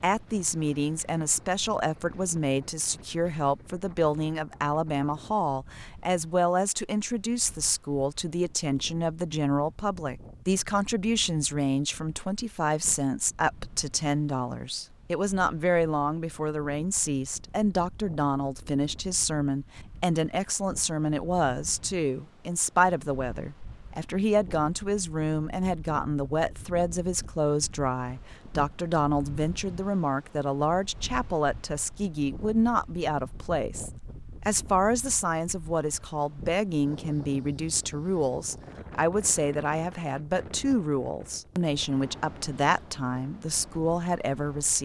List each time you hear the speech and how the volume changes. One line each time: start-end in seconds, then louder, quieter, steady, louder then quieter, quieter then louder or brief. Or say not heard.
0.0-44.7 steady.